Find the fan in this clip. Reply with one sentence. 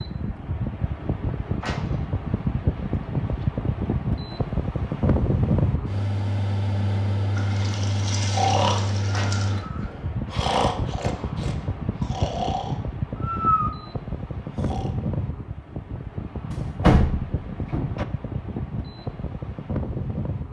The fan can be heard from 0.0 to 20.4 s.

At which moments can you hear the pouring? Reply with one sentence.
You can hear the pouring from 7.3 to 9.6 s.